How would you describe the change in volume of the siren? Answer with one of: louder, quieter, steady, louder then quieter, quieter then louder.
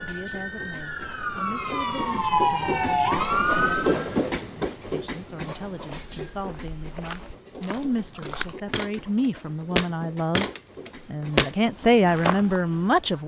louder.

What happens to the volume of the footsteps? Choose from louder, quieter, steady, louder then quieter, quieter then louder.
louder.